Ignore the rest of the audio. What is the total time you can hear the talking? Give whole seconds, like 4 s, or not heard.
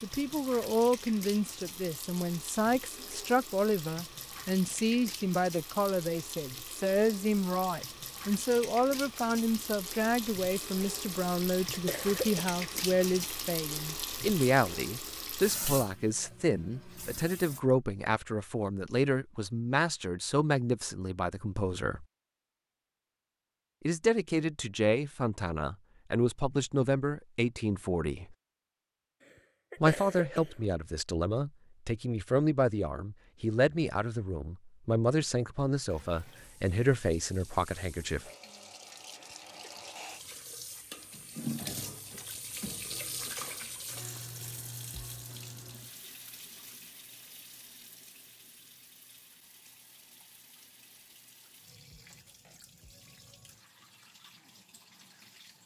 35 s.